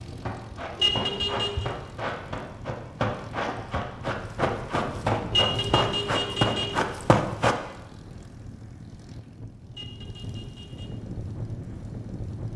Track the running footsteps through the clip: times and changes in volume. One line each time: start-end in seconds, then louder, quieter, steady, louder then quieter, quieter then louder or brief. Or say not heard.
0.0-7.5 louder.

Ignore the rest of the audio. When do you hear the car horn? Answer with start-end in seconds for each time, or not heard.
0.8-1.7, 5.3-6.8, 9.7-10.9.